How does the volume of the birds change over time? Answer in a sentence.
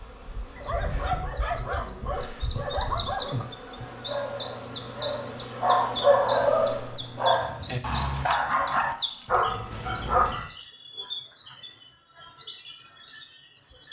The loudness of the birds goes up.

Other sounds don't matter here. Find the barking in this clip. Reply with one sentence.
You can hear the barking from 0.6 to 10.5 s.